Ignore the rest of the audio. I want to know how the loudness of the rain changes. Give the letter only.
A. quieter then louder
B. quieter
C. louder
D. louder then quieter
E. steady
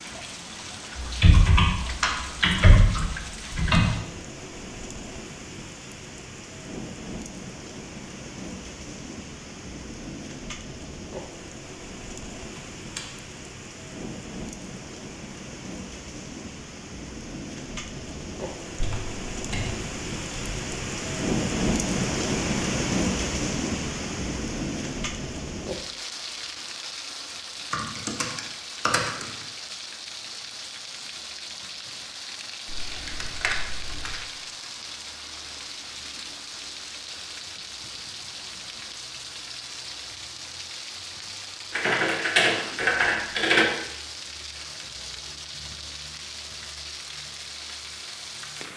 D.